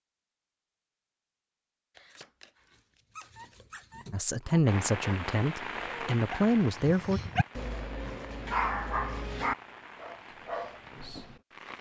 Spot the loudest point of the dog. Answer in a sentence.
The volume of the dog peaks at 9 seconds.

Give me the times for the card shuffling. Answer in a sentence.
You can hear the card shuffling from 1.9 to 4.0 s.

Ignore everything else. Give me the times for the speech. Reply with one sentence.
The speech can be heard from 4.1 to 7.2 s.